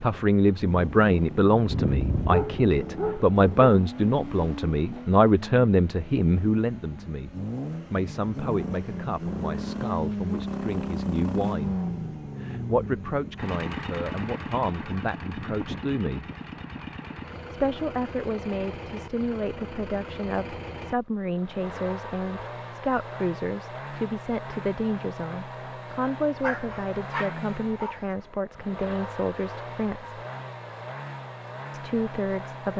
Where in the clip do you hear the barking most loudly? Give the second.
2 s.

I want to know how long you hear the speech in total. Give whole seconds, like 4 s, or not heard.
29 s.